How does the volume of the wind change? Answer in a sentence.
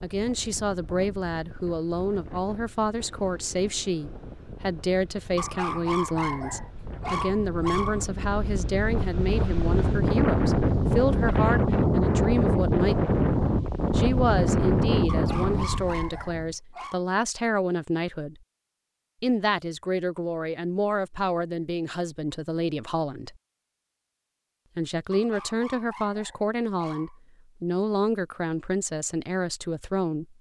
The loudness of the wind goes up.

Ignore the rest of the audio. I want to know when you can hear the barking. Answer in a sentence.
You can hear the barking from 5.3 to 8.1 s, from 15.1 to 17.0 s and from 25.1 to 27.2 s.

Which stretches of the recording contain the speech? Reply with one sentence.
You can hear the speech from 0.0 to 13.0 s, from 13.9 to 18.4 s, from 19.2 to 23.4 s and from 24.8 to 30.3 s.